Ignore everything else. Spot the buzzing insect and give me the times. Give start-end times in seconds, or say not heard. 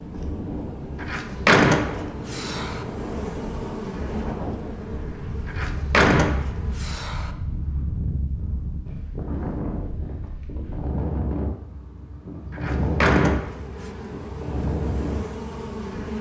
0.0-6.8, 12.8-16.1.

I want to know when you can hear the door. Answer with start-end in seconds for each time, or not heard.
1.0-2.8, 5.5-7.3, 12.5-13.9.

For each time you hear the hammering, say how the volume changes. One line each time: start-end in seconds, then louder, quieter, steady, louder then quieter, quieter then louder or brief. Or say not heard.
not heard.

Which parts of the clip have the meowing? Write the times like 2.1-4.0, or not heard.
not heard.